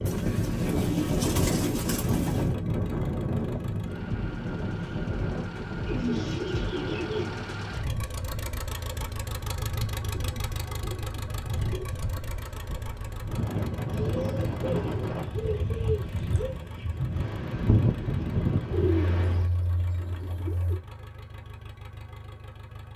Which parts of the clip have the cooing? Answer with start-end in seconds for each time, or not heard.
0.1-2.5, 5.8-7.4, 10.0-11.8, 13.9-16.6, 18.7-20.8.